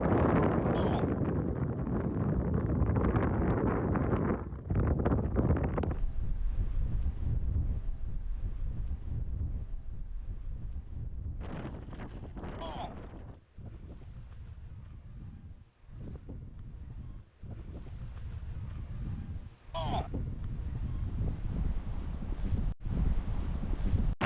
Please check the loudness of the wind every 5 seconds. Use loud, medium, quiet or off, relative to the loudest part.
loud, medium, quiet, quiet, medium.